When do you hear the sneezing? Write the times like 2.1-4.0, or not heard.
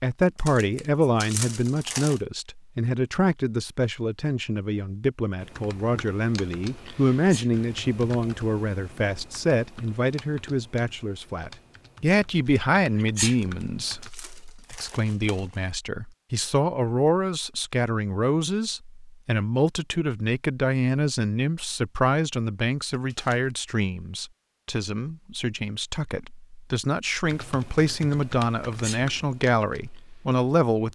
7.1-7.5, 12.9-13.3, 28.6-29.1.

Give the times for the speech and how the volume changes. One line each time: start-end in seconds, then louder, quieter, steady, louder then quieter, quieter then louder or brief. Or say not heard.
0.0-30.9 steady.